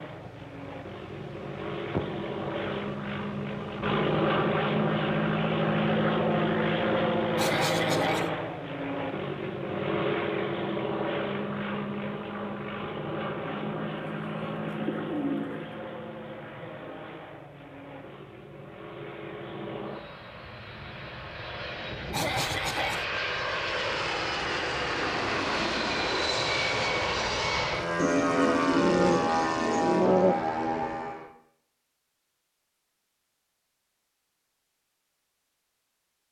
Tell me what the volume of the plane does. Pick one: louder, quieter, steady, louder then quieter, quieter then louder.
quieter then louder.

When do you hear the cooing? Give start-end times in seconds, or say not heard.
13.4-15.8, 27.9-30.4.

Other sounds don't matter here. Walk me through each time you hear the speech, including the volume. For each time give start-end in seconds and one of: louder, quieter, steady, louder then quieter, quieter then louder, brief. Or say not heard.
not heard.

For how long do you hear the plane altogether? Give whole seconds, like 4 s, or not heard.
31 s.